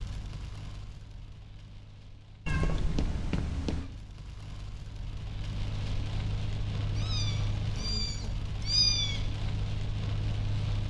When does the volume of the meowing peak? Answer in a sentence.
The volume of the meowing peaks at 9 seconds.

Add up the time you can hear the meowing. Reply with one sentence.
The meowing can be heard for 4 seconds in total.